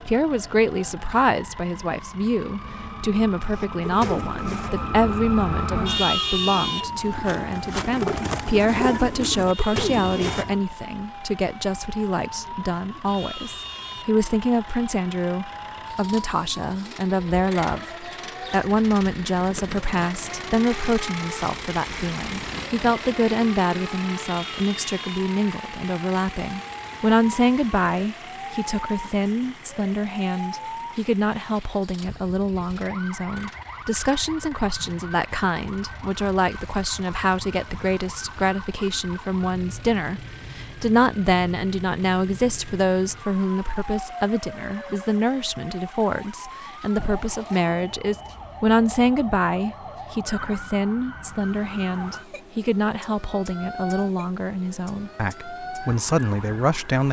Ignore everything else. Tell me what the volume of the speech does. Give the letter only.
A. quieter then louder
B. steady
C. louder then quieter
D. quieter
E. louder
B.